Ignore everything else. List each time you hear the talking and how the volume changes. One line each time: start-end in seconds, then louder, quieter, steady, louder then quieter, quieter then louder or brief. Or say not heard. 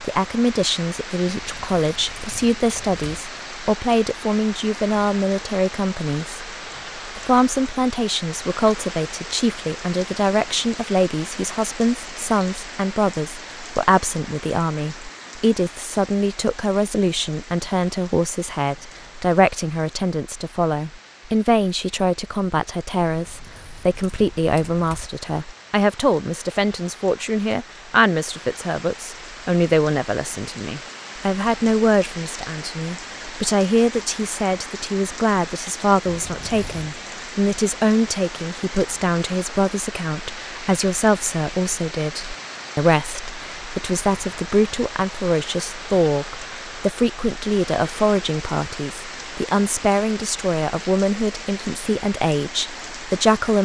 0.0-53.6 steady.